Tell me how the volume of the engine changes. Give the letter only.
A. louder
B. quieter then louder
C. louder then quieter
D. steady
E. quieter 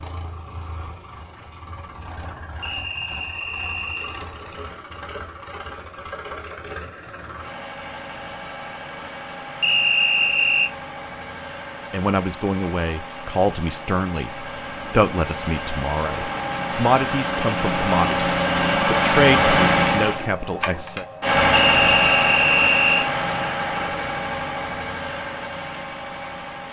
A.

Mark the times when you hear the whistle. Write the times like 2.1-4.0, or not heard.
2.6-4.2, 9.6-10.7, 21.5-23.1.